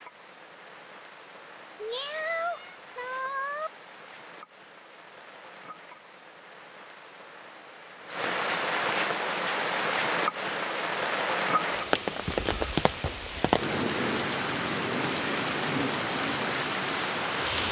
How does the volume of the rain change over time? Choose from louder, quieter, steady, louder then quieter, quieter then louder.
louder.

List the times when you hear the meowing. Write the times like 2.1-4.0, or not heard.
1.8-3.7.